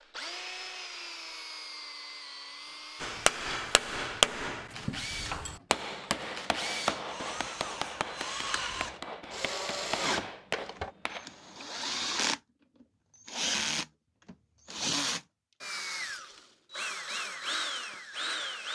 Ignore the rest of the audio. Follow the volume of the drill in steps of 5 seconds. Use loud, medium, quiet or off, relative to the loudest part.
medium, medium, loud, loud.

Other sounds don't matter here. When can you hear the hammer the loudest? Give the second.
4 s.